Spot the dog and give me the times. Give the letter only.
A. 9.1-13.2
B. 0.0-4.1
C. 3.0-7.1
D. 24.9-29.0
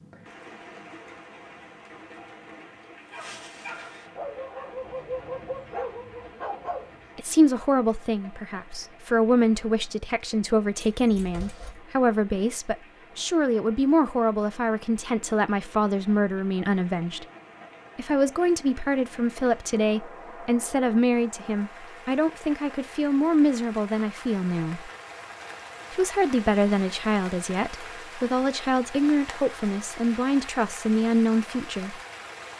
C.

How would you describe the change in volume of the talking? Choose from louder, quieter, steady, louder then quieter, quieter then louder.
steady.